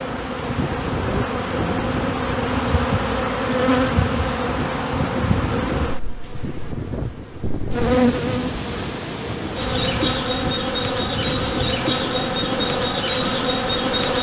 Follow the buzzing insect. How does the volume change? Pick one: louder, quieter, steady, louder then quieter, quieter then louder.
steady.